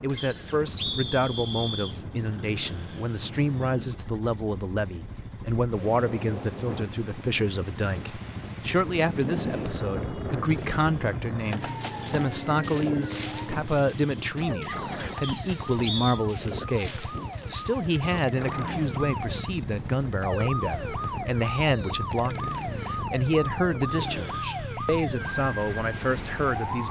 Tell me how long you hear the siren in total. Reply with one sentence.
You can hear the siren for 15 seconds altogether.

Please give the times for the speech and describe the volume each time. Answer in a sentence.
The speech can be heard from 0.0 to 26.8 s, at a steady volume.